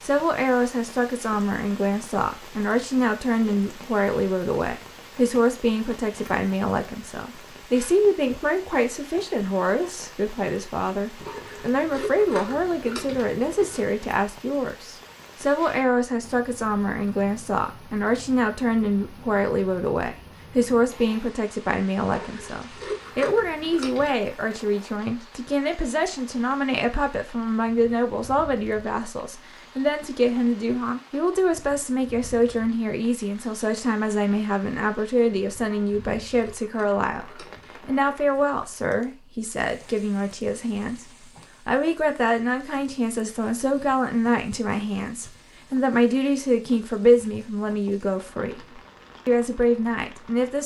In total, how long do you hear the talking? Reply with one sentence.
You can hear the talking for 50 seconds altogether.